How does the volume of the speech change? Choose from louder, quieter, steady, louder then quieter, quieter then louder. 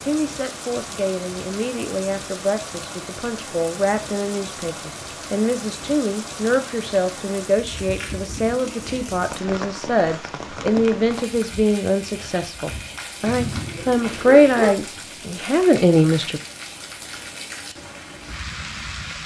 louder.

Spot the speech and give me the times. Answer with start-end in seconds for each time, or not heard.
0.0-16.4.